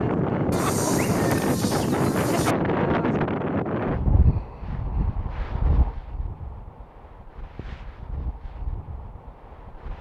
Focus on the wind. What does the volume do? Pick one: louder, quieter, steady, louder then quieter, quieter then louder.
quieter.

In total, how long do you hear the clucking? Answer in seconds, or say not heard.
2 s.